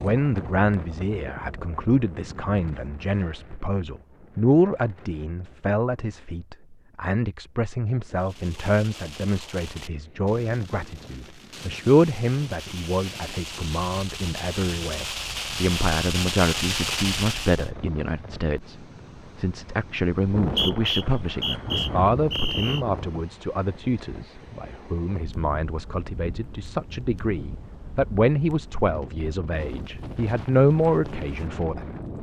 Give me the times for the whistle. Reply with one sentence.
The whistle can be heard from 20.4 to 22.8 s.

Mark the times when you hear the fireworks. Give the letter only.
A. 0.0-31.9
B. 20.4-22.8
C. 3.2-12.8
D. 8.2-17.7
D.